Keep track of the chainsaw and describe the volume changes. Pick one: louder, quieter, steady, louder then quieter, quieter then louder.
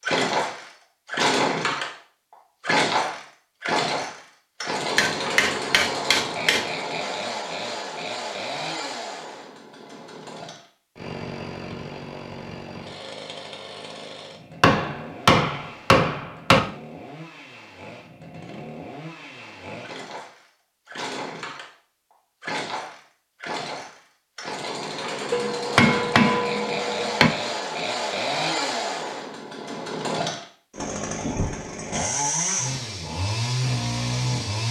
quieter then louder.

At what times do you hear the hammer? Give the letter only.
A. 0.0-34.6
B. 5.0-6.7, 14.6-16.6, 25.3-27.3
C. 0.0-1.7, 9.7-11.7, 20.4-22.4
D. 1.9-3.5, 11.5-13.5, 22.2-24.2
B.